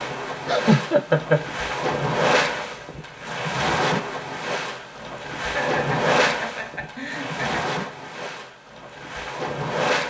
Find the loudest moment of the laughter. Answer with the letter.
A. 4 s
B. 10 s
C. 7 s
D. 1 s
D.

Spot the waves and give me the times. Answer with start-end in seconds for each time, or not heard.
0.0-10.0.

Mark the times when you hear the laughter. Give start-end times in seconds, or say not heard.
0.5-1.4, 5.4-7.7.